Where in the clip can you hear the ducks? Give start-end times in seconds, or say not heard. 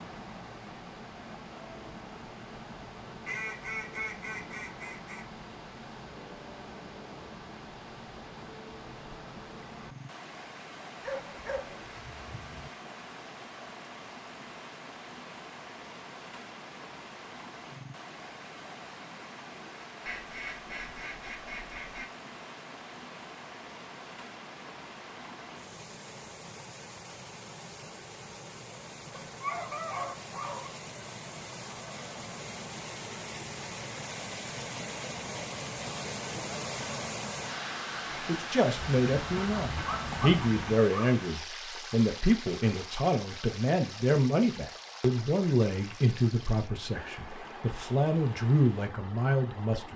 3.2-5.2, 20.1-22.1, 38.8-40.8.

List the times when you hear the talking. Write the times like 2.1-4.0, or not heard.
38.2-49.9.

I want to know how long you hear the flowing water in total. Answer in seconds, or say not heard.
50 s.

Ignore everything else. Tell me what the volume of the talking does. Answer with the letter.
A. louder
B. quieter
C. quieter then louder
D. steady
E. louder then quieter
D.